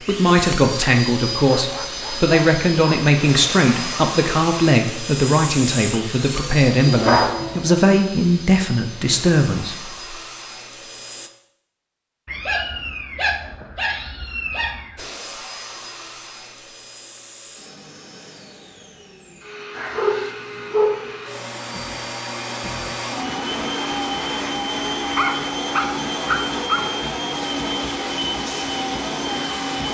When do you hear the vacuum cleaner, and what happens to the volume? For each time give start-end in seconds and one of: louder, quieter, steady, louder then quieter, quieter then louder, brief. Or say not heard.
0.0-11.3 quieter
14.9-29.8 louder.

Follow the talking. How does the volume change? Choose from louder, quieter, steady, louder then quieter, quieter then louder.
steady.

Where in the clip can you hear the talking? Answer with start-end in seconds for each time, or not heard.
0.1-10.1.